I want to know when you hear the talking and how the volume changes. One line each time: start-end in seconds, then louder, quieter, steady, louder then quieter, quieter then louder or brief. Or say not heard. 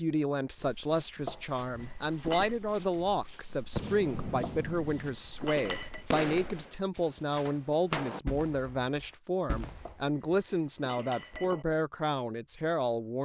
0.0-13.2 steady.